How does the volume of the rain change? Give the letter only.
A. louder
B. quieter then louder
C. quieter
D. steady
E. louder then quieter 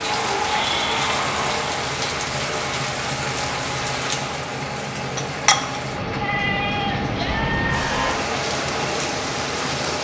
D.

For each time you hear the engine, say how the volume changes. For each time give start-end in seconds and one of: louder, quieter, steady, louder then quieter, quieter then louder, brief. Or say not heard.
0.0-9.9 steady.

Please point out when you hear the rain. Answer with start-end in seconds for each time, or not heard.
0.0-9.9.